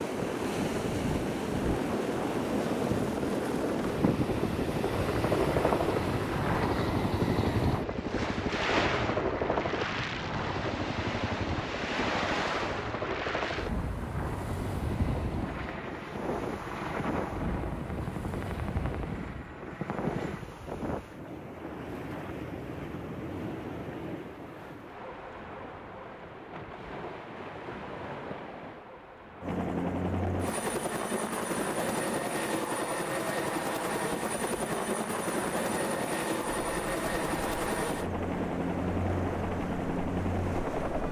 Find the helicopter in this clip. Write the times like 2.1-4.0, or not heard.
0.0-20.5, 29.4-41.0.